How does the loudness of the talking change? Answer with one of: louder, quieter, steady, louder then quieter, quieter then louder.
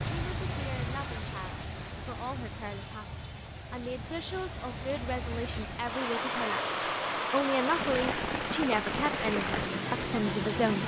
louder.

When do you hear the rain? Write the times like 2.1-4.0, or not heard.
0.0-10.8.